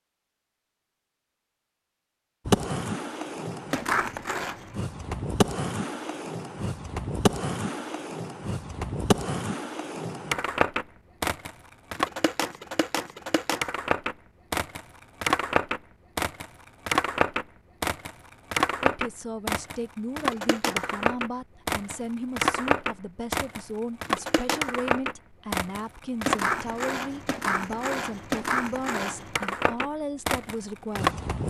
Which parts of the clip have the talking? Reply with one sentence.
You can hear the talking from 18.8 to 31.1 s.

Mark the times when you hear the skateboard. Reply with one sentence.
You can hear the skateboard from 2.5 to 31.4 s.